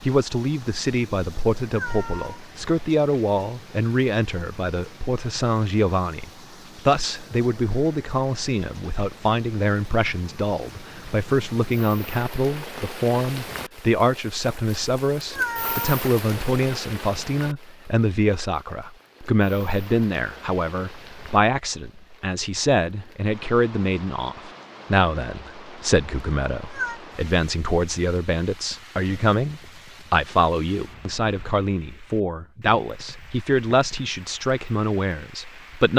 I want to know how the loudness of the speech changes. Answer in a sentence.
The volume of the speech stays about the same.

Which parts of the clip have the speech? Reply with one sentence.
The speech can be heard from 0.0 to 35.9 s.